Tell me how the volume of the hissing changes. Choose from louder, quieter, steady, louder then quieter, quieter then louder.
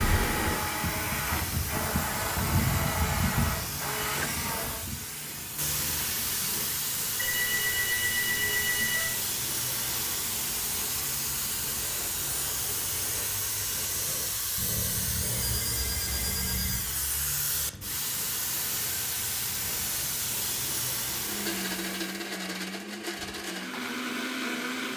steady.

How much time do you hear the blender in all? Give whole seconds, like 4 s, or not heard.
9 s.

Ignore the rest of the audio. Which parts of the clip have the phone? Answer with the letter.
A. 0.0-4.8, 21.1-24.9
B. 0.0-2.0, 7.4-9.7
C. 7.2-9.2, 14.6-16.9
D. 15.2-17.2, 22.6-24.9
C.